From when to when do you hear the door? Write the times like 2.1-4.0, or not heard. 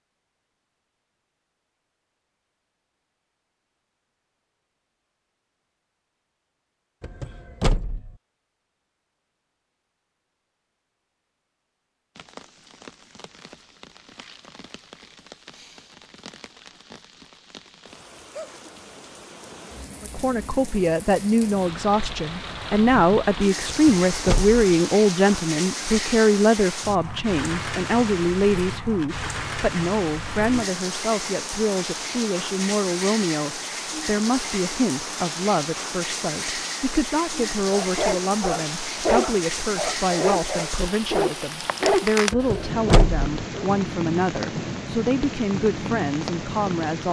7.0-8.1, 23.6-24.8, 42.3-43.2.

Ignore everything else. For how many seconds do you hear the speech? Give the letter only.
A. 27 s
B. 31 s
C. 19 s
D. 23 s
A.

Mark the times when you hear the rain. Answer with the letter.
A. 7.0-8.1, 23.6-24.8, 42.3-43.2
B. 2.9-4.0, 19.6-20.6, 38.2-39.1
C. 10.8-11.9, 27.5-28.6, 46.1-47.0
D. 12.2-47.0
D.